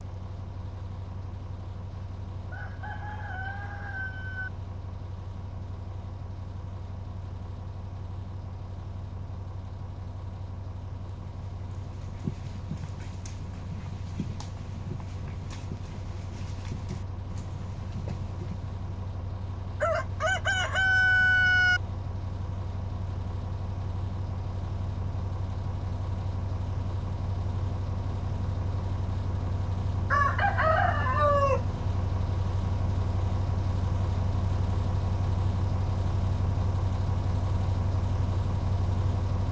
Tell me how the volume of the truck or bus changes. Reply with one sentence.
The loudness of the truck or bus goes up.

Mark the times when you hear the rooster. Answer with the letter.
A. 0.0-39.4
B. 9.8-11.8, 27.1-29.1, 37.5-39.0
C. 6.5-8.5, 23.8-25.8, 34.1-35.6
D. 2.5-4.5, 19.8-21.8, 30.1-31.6
D.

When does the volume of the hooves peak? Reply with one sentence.
The volume of the hooves peaks at 12 seconds.